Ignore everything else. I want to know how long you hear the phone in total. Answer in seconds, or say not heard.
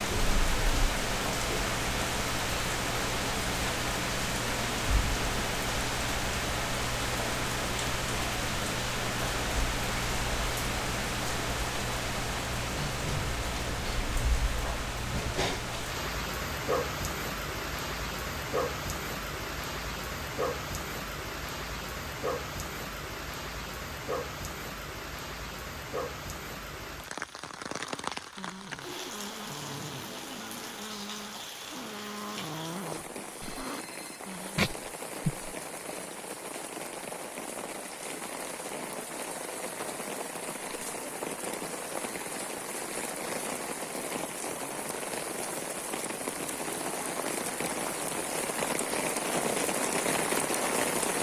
2 s.